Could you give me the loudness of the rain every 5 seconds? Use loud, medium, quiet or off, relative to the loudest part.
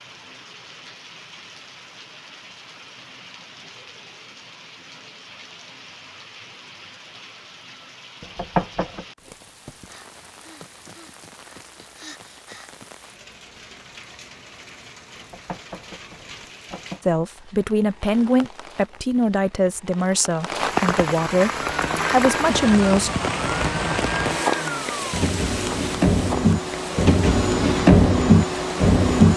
quiet, quiet, quiet, quiet, loud, medium.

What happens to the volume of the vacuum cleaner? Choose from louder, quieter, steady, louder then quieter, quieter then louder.
louder.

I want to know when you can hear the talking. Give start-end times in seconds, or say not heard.
17.1-23.1.